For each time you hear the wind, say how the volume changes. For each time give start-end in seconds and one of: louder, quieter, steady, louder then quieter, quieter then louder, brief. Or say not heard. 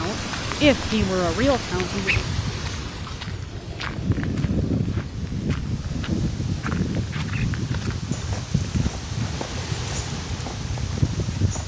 0.0-11.6 steady.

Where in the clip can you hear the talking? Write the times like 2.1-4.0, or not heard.
0.0-2.2.